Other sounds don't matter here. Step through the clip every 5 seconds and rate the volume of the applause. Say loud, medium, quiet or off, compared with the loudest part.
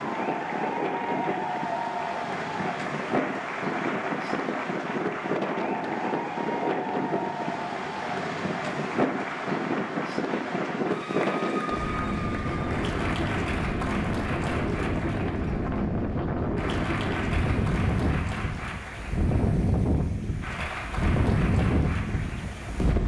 loud, loud, loud, medium, medium.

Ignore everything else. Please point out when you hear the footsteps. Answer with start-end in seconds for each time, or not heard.
not heard.